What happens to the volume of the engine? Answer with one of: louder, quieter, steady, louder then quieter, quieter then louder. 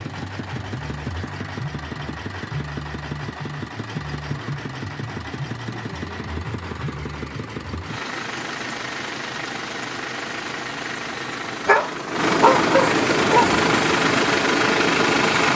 louder.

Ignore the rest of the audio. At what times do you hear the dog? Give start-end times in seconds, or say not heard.
11.7-13.5.